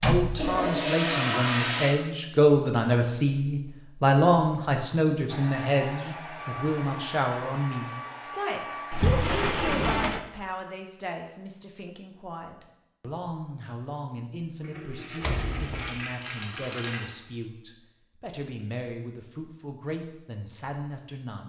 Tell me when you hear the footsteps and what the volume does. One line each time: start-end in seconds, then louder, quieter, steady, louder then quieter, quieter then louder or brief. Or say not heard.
not heard.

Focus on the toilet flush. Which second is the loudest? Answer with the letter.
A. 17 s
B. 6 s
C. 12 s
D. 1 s
D.